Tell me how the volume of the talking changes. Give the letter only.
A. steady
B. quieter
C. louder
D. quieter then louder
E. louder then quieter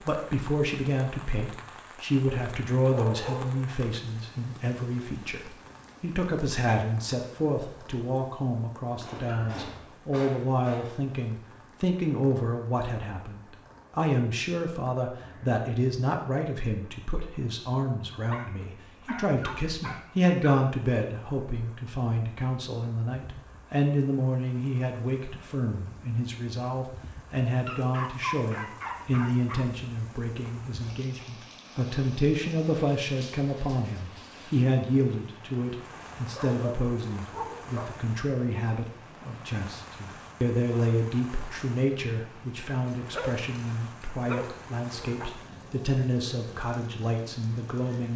A.